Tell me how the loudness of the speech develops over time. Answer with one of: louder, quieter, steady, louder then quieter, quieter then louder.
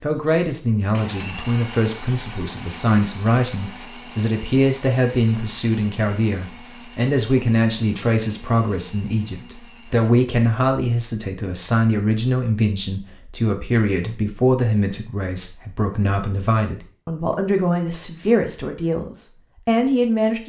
steady.